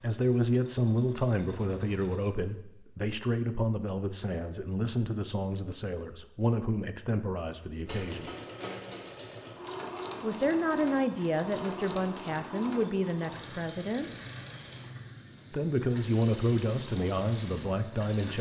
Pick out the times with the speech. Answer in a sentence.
You can hear the speech from 0.0 to 8.3 s, from 10.2 to 14.1 s and from 15.5 to 18.3 s.